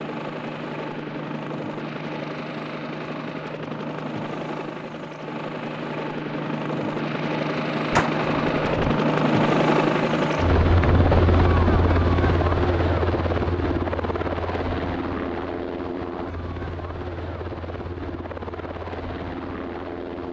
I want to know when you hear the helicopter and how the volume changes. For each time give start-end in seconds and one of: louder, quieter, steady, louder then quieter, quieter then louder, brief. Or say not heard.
0.0-20.2 louder then quieter.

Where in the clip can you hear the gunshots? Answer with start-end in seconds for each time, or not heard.
7.9-8.9.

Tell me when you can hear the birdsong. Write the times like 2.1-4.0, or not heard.
not heard.